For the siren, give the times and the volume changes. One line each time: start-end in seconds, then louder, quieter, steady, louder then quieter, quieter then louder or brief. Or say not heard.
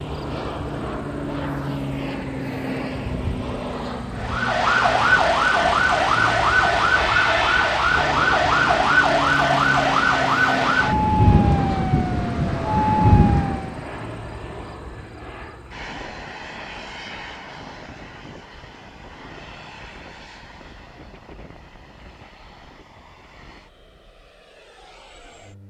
4.2-13.8 steady.